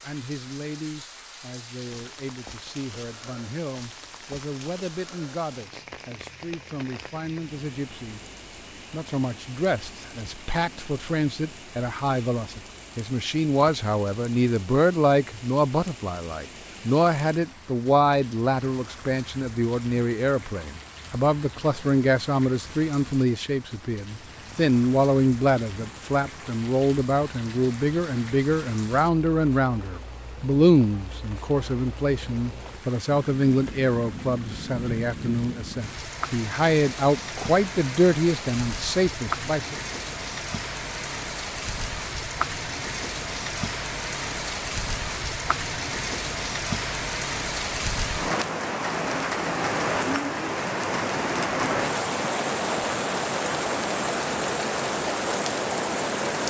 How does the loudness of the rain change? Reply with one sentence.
The volume of the rain goes up.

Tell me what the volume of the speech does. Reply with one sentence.
The volume of the speech goes up.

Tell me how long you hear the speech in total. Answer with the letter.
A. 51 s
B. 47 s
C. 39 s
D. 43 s
C.